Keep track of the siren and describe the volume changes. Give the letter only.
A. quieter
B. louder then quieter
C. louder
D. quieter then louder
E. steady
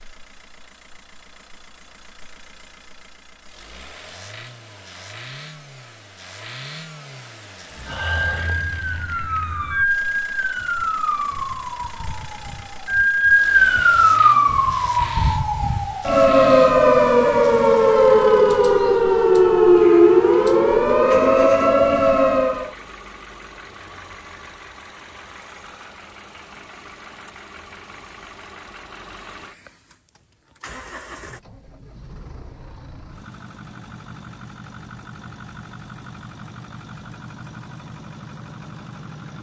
C.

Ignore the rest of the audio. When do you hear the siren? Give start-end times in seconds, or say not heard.
7.8-22.7.